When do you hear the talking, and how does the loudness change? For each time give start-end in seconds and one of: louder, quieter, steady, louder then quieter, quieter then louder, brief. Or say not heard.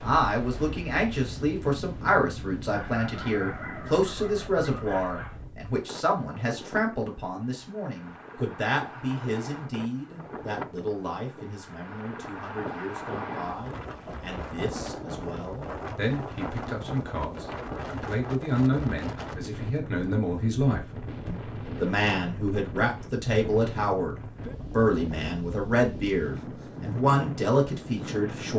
0.0-28.5 quieter then louder.